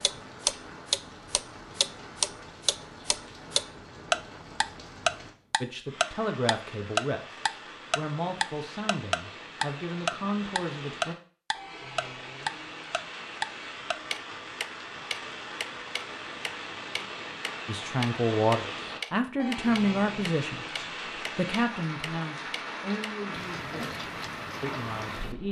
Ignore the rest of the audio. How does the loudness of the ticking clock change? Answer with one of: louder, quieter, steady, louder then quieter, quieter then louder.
quieter.